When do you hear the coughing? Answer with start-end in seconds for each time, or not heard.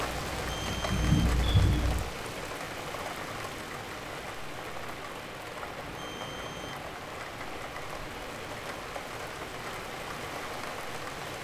not heard.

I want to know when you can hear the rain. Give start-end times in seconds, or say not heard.
0.0-11.3.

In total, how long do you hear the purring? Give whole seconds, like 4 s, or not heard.
2 s.